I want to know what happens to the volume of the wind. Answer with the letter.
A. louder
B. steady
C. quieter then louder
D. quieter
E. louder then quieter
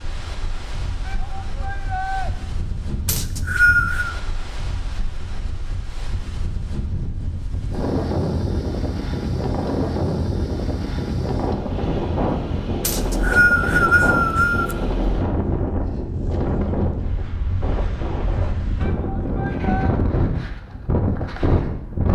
A.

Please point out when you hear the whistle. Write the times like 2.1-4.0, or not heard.
3.0-4.1, 12.8-14.8.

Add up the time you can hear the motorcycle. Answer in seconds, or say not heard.
not heard.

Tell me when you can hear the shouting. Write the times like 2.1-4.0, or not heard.
1.1-2.3, 18.8-19.9.